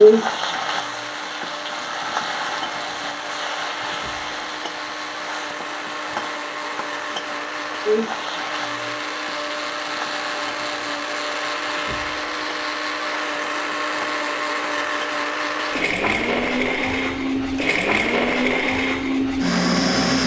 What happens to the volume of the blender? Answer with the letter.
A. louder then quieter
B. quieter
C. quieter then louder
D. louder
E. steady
D.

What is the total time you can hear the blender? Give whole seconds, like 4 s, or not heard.
20 s.